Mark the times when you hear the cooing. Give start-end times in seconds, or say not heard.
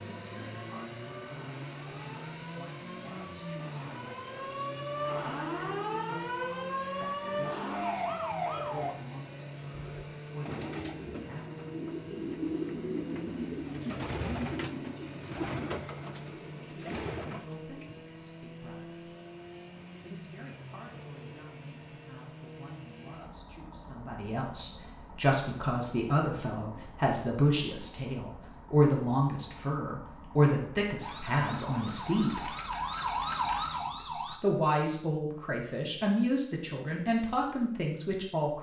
9.7-18.1.